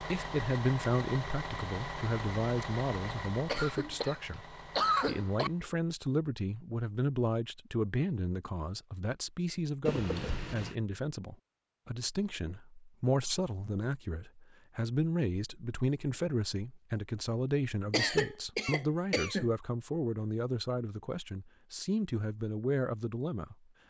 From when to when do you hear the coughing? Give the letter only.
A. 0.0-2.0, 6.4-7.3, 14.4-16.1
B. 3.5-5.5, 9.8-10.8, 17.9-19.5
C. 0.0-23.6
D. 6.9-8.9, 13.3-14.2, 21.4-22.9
B.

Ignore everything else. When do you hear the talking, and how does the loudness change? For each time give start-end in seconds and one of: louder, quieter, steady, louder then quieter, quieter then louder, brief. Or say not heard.
0.0-23.6 steady.